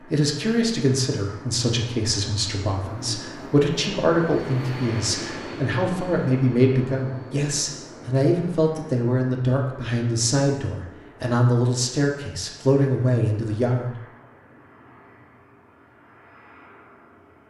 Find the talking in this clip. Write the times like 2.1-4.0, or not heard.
0.1-13.9.